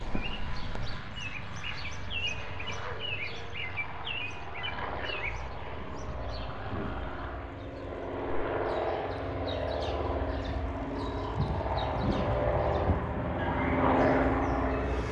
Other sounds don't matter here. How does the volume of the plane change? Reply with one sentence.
The loudness of the plane goes up.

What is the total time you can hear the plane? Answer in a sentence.
You can hear the plane for 15 seconds altogether.